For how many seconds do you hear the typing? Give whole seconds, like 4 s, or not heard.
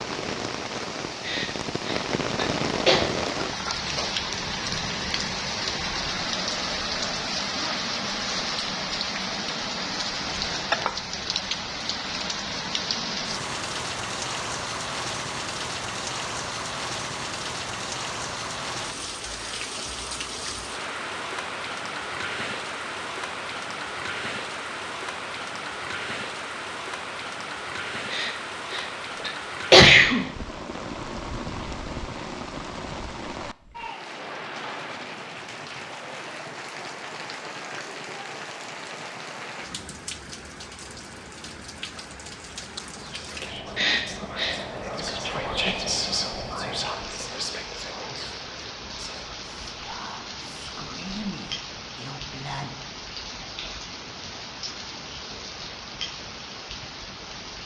not heard.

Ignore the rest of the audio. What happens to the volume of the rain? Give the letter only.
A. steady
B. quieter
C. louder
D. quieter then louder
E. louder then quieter
B.